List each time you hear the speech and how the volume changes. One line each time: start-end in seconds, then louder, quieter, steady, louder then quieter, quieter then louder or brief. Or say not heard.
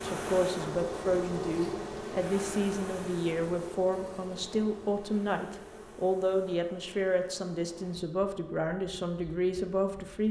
0.0-10.2 steady.